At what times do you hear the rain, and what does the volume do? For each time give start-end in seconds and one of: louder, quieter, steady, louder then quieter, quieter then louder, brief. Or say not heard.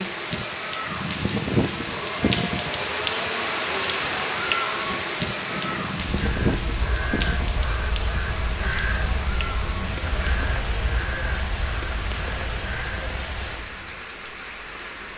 0.0-15.1 quieter.